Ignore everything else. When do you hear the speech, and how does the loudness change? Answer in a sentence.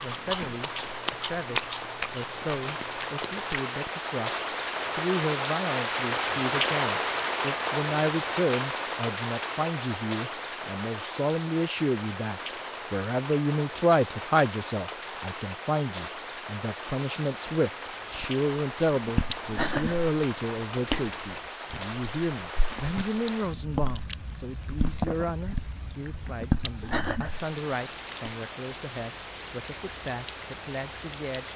You can hear the speech from 0.0 to 31.5 s, getting louder then quieter.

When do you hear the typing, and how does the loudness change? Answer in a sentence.
You can't hear the typing here.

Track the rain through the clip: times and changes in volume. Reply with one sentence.
You can hear the rain from 0.0 to 31.5 s, getting quieter.